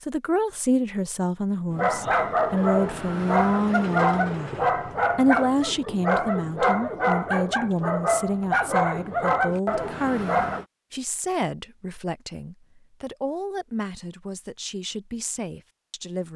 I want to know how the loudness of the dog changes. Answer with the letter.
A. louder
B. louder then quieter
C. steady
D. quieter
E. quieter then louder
C.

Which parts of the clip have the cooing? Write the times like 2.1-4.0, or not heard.
not heard.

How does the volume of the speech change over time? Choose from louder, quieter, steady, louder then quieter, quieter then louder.
quieter.